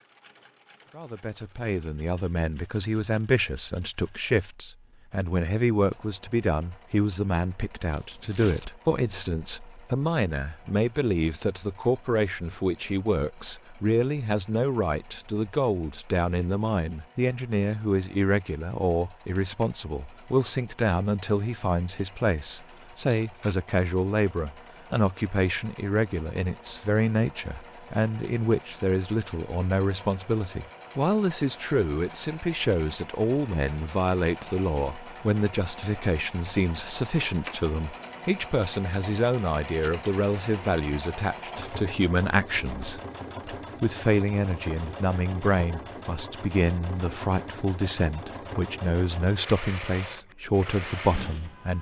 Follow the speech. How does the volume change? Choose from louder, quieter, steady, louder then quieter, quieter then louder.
steady.